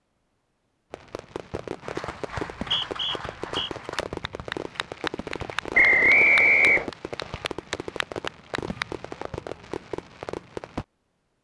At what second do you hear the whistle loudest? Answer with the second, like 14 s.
6 s.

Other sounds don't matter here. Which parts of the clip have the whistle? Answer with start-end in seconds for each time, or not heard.
2.4-3.7, 5.7-6.9.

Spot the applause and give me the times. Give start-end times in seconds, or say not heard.
1.8-8.8.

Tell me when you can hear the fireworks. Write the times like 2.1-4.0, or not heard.
0.9-10.8.